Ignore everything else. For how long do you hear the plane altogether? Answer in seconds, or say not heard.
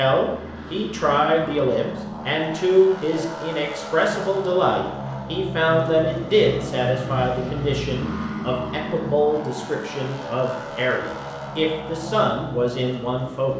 13 s.